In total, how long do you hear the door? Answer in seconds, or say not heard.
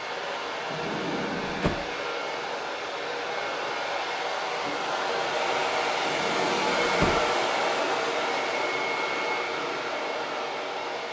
2 s.